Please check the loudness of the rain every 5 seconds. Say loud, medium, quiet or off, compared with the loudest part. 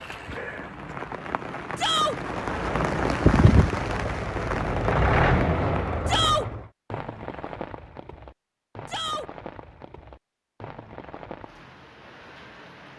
loud, medium, quiet.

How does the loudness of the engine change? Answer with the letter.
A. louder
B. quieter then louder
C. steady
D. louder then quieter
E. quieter
D.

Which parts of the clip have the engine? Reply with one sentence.
You can hear the engine from 2.2 to 6.7 s.